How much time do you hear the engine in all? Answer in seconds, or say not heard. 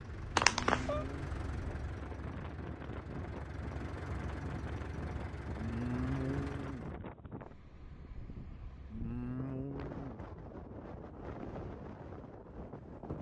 7 s.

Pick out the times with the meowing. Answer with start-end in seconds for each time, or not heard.
0.3-1.1.